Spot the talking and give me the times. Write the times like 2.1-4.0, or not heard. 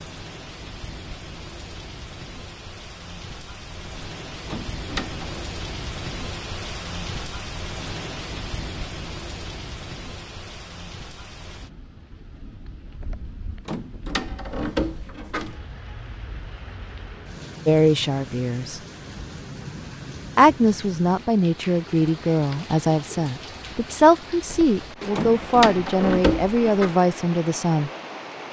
17.6-18.8, 20.4-27.9.